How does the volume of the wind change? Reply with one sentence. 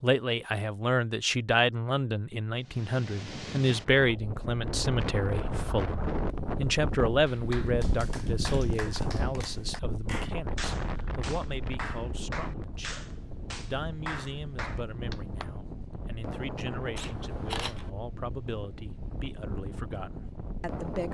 The loudness of the wind goes down.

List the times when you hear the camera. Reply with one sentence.
You can hear the camera from 16.9 to 17.9 s.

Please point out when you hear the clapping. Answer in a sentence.
The clapping can be heard from 7.2 to 15.5 s.